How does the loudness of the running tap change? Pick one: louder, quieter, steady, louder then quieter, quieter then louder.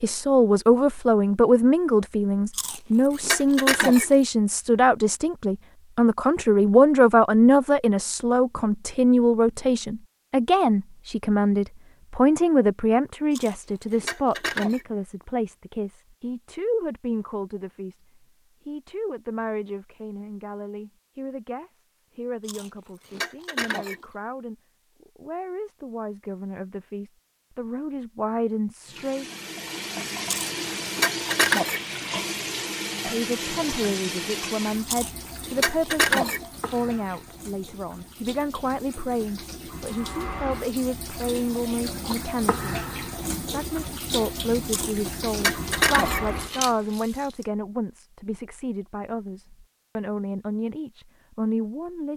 quieter then louder.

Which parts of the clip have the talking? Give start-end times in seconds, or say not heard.
0.0-18.0, 18.6-29.2, 33.0-42.8, 43.5-52.1.